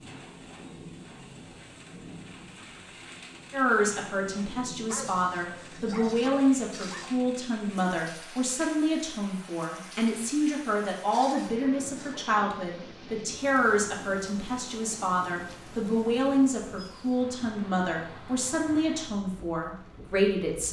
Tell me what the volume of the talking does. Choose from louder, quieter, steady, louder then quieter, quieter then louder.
steady.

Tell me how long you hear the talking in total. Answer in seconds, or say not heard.
17 s.